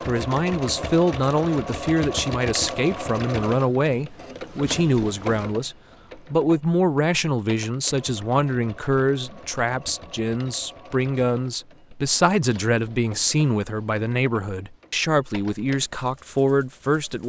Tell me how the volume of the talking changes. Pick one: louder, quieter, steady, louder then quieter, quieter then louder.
steady.